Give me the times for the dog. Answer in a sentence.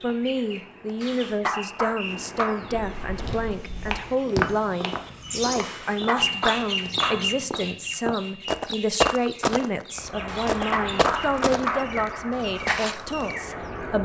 You can hear the dog from 1.0 to 2.6 s, from 5.6 to 7.3 s and from 10.2 to 11.9 s.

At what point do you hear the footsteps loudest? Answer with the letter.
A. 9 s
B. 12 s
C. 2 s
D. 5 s
A.